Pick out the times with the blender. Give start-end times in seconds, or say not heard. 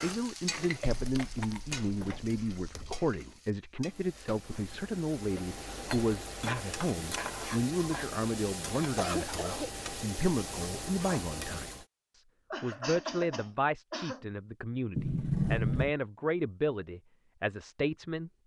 not heard.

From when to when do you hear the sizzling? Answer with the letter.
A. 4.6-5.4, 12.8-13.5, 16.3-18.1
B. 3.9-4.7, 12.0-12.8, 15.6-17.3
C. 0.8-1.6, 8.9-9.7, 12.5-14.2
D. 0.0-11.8
D.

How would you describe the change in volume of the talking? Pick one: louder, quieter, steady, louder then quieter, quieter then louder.
steady.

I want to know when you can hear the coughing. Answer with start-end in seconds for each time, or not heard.
0.8-1.6, 8.9-9.7, 12.5-14.2.